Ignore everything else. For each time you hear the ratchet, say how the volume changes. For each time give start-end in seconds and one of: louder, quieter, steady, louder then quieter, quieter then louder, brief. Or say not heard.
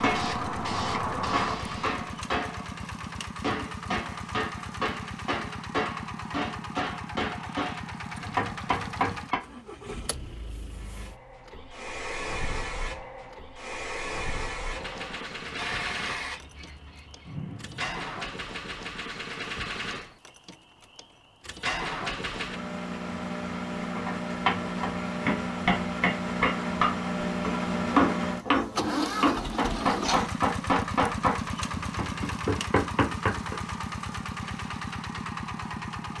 not heard.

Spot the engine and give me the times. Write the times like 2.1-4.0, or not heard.
0.0-36.1.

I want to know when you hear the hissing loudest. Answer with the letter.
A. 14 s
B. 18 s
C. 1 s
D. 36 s
C.